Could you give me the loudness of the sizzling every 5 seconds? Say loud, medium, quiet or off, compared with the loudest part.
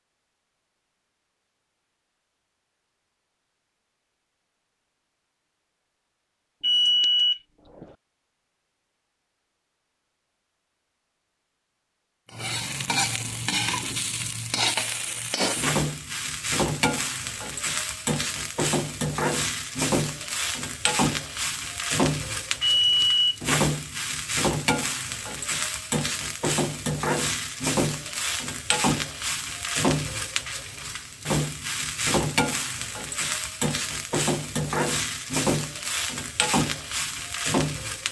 off, off, loud, loud, loud, loud, loud, loud.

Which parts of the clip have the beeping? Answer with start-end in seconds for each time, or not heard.
6.6-7.8, 22.6-23.4.